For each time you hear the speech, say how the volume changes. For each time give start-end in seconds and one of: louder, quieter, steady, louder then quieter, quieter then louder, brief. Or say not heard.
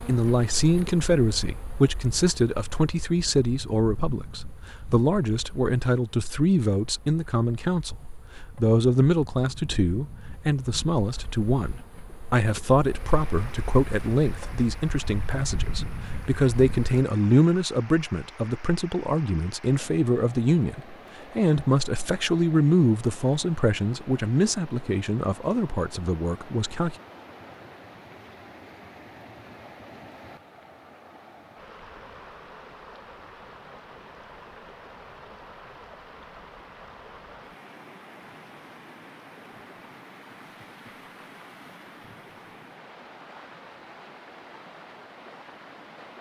0.1-26.9 steady.